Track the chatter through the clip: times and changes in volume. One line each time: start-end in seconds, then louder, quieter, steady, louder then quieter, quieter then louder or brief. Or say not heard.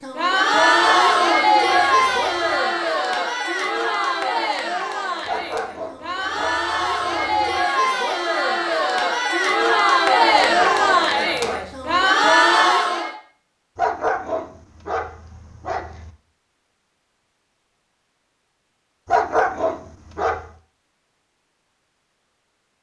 0.0-13.2 quieter then louder.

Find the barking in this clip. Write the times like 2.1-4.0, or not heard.
0.6-2.6, 5.2-7.6, 10.3-12.0, 13.8-16.1, 19.1-20.4.